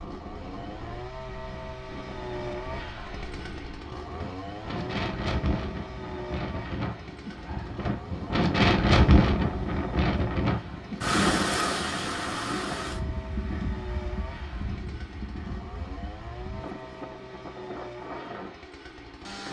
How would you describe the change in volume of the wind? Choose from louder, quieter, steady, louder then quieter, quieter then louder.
louder then quieter.